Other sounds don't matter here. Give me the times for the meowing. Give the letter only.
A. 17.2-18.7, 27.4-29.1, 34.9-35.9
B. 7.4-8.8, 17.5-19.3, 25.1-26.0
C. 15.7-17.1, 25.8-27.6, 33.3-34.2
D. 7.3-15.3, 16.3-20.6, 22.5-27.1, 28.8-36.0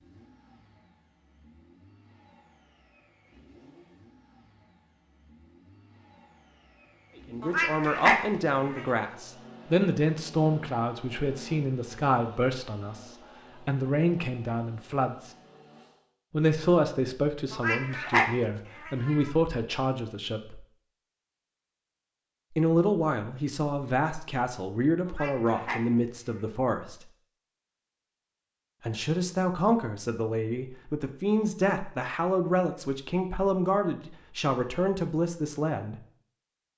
B.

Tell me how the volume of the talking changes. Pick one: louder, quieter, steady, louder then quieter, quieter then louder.
steady.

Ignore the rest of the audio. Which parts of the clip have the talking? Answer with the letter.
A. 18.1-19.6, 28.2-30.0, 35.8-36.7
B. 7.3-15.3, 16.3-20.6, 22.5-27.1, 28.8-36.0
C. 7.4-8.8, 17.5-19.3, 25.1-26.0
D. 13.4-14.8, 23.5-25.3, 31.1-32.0
B.